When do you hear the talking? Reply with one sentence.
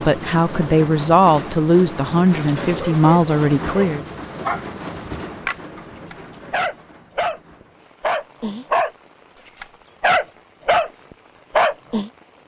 You can hear the talking from 0.1 to 4.0 s.